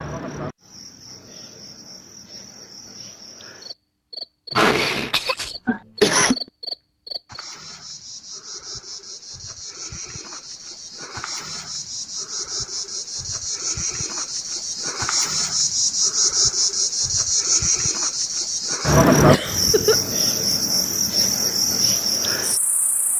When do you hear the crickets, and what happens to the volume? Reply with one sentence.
You can hear the crickets from 0.0 to 23.1 s, getting louder.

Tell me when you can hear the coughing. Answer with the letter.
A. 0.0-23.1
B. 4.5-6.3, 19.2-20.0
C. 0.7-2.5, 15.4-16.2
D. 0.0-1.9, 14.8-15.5
B.